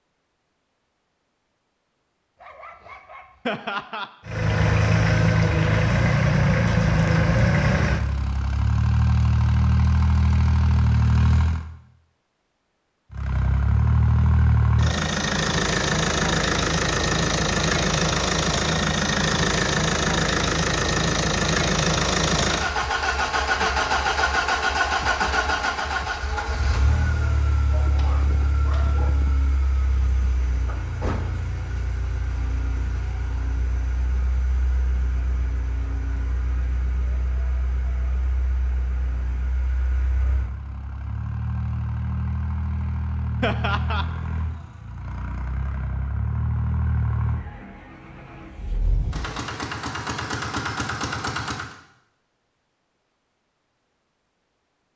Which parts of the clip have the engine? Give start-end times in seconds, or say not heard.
4.2-11.7, 13.1-51.8.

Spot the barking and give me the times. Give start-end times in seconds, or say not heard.
2.4-3.6, 27.7-29.4.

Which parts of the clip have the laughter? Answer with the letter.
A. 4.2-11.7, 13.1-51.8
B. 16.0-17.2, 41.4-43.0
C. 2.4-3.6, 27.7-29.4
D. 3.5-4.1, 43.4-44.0
D.